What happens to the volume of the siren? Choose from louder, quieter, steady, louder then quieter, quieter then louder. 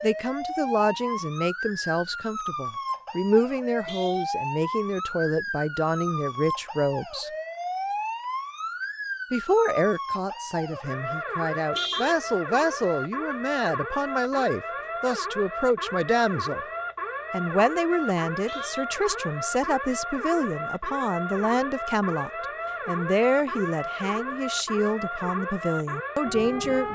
steady.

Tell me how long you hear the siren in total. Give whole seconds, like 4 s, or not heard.
27 s.